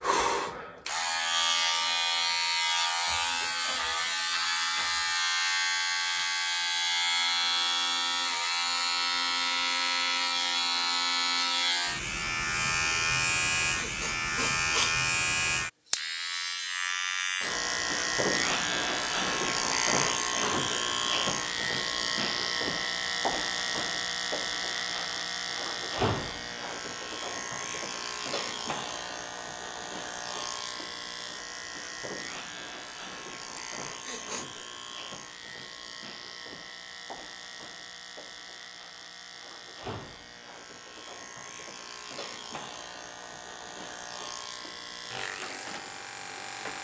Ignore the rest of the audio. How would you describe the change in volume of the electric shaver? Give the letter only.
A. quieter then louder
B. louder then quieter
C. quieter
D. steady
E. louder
C.